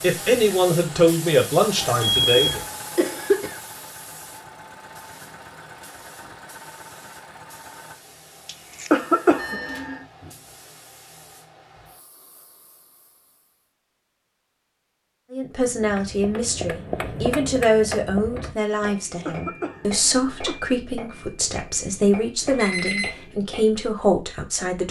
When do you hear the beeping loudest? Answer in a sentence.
The loudest moment of the beeping is at 2 seconds.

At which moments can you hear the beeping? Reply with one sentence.
You can hear the beeping from 1.8 to 2.6 s, from 9.3 to 10.0 s and from 22.6 to 23.1 s.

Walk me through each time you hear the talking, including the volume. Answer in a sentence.
The talking can be heard briefly from 0.0 to 2.6 s; and from 15.3 to 24.8 s, at a steady volume.